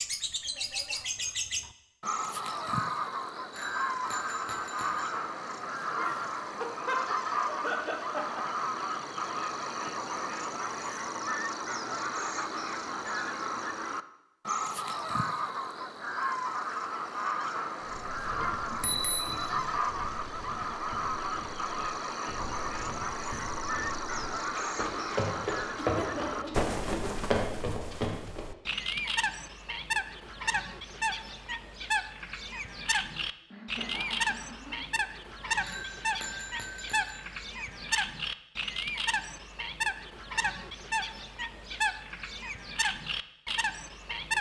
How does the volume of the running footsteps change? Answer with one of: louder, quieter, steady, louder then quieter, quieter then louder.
louder.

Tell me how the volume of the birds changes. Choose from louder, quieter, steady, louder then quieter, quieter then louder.
steady.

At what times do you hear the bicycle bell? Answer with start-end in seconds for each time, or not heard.
3.5-5.2, 18.6-19.6, 35.6-37.2.